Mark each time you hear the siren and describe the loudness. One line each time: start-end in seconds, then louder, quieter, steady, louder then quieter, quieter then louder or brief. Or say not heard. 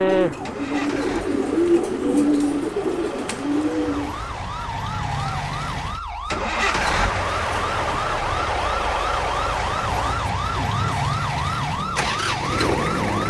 0.0-13.2 louder.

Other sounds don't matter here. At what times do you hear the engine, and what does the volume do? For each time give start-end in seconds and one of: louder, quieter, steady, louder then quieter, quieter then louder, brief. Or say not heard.
0.5-13.2 louder.